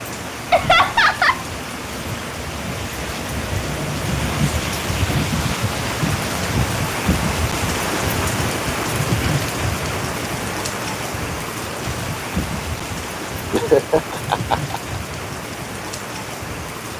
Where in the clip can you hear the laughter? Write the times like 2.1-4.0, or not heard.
0.5-1.4, 13.5-14.8.